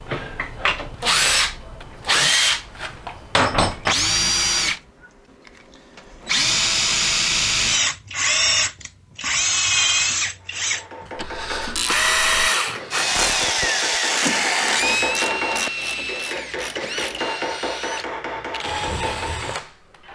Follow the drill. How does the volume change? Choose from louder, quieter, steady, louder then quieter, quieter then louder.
quieter.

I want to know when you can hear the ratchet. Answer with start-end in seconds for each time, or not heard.
11.2-17.3.